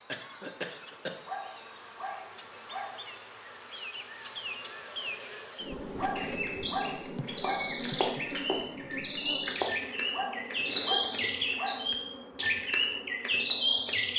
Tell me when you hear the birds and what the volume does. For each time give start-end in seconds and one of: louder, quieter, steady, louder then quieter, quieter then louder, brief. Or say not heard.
6.2-14.1 louder.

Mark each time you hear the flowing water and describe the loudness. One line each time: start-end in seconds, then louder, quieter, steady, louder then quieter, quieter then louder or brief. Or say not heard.
not heard.